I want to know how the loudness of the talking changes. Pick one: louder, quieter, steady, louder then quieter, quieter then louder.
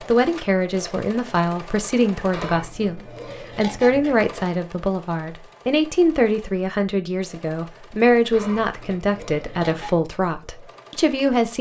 steady.